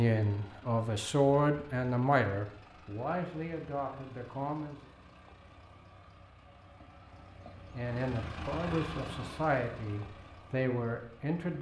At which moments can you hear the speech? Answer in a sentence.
You can hear the speech from 0.0 to 4.8 s and from 7.8 to 11.5 s.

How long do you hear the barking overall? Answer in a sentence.
The barking can't be heard in this clip.